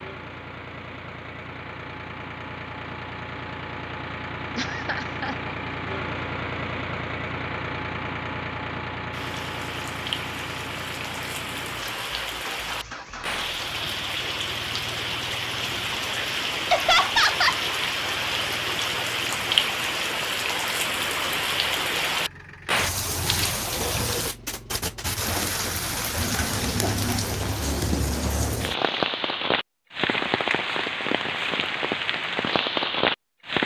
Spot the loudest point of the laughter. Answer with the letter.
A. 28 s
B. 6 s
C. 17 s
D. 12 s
C.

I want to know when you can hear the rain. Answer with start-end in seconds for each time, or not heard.
9.1-33.6.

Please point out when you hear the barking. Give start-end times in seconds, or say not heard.
not heard.